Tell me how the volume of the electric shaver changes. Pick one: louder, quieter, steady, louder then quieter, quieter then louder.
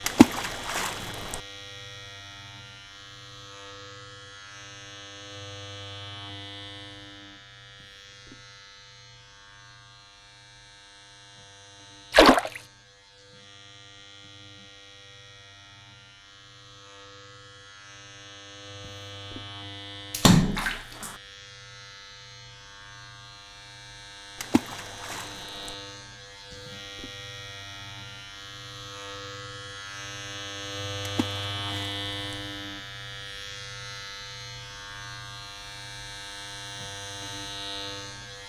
quieter then louder.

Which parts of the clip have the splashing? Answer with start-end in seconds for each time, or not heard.
0.1-1.4, 12.1-12.6, 20.1-21.1, 24.4-25.8, 31.1-32.4.